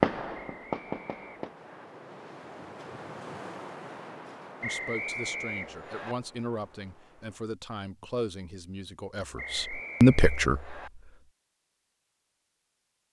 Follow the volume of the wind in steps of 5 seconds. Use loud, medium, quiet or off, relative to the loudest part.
loud, medium, off.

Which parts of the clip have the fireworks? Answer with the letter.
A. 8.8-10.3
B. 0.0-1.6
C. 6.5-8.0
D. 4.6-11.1
B.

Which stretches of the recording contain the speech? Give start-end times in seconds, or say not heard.
4.6-11.1.